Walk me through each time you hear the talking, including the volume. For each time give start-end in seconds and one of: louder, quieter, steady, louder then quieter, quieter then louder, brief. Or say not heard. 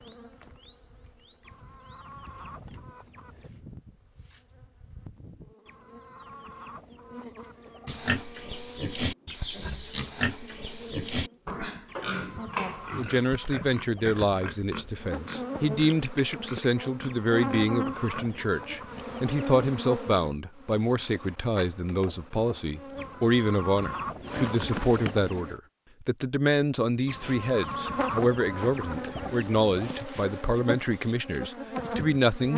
12.9-32.5 steady.